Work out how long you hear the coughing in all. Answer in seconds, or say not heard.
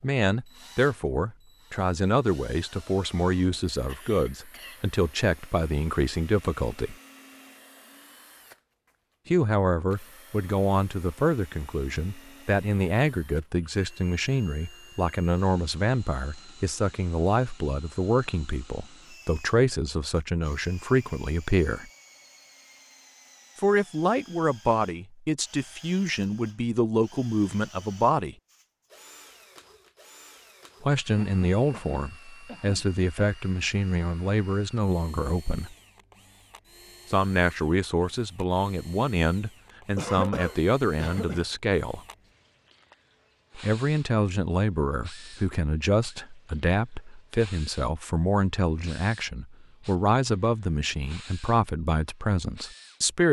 5 s.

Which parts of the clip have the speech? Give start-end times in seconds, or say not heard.
0.0-7.0, 9.2-21.9, 23.6-28.4, 30.8-35.8, 37.1-42.0, 43.5-53.2.